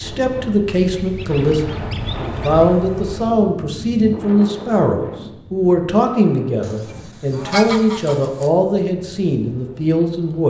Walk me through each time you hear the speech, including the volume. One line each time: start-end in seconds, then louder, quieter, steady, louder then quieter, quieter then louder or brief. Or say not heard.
0.0-10.4 steady.